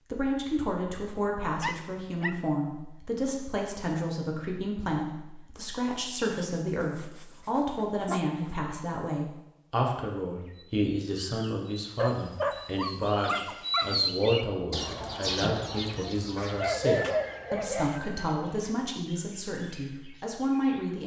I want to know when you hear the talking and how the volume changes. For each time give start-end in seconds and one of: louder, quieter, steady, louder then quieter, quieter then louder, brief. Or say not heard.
0.1-21.0 steady.